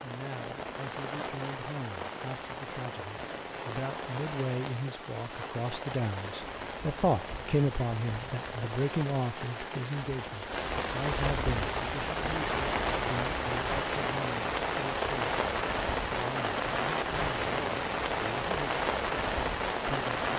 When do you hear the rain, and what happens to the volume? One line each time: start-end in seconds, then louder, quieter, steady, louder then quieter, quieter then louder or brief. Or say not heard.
0.0-20.3 louder.